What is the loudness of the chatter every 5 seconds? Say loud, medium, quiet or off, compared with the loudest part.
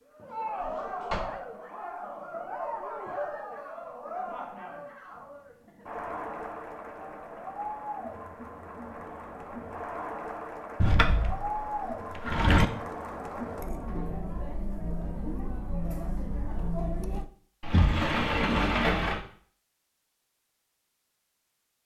loud, loud, loud, loud, off.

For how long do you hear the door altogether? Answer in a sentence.
The door can be heard for 4 seconds in total.